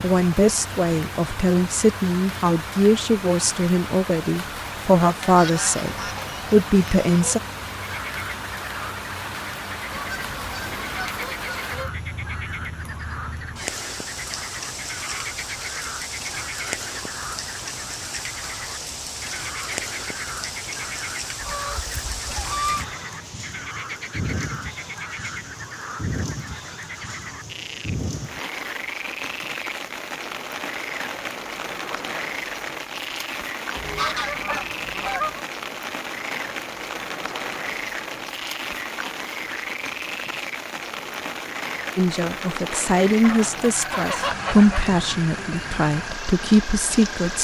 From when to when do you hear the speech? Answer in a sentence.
You can hear the speech from 0.0 to 7.4 s and from 42.0 to 47.4 s.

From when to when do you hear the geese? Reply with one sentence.
The geese can be heard from 5.2 to 7.4 s, from 9.9 to 11.9 s, from 21.4 to 22.9 s, from 33.8 to 35.5 s and from 43.2 to 45.0 s.